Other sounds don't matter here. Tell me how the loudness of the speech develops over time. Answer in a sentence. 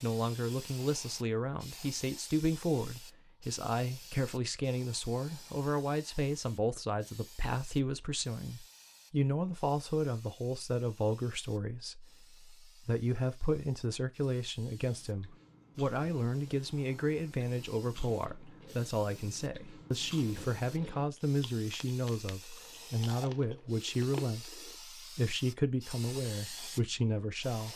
The loudness of the speech stays about the same.